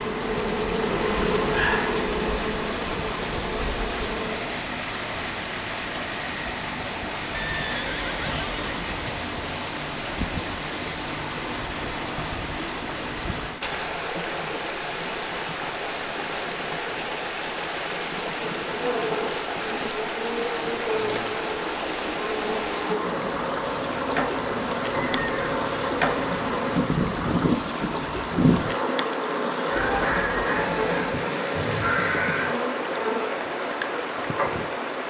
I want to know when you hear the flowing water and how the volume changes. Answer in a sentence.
You can hear the flowing water from 0.0 to 35.0 s, at a steady volume.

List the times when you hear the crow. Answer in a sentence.
The crow can be heard from 29.6 to 32.5 s.